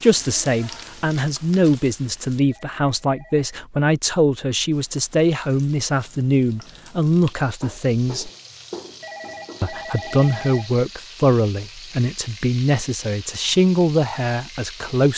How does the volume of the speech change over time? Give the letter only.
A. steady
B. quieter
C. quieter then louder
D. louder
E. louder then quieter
A.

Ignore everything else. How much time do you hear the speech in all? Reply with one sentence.
The speech can be heard for 14 seconds in total.